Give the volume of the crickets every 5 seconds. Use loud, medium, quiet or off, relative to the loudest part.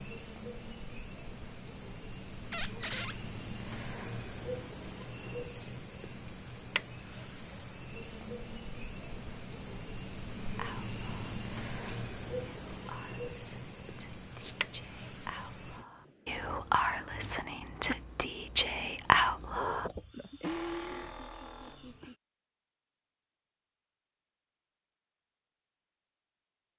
loud, loud, loud, loud, loud, off.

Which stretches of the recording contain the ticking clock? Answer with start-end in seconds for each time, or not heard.
not heard.